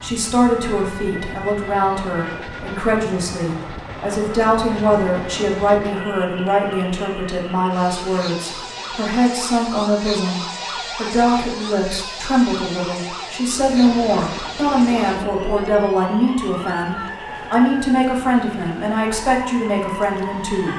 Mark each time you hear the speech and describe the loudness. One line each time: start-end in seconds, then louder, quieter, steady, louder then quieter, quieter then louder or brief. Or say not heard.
0.0-20.7 steady.